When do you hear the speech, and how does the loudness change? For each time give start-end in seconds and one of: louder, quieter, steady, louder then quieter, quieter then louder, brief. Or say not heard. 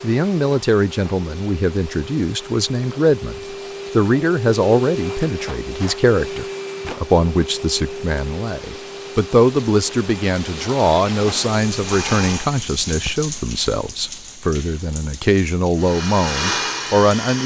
0.0-17.4 steady.